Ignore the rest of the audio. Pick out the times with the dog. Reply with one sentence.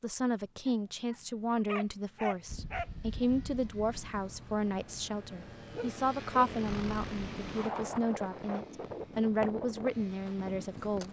You can hear the dog from 0.7 to 3.2 s and from 5.7 to 6.5 s.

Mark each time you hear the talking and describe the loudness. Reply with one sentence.
The talking can be heard from 0.0 to 11.0 s, at a steady volume.